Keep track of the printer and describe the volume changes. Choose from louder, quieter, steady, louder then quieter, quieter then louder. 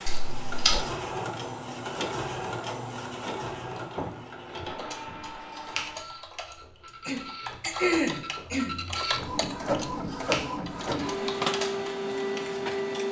quieter then louder.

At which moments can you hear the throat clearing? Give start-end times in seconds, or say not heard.
6.8-8.8.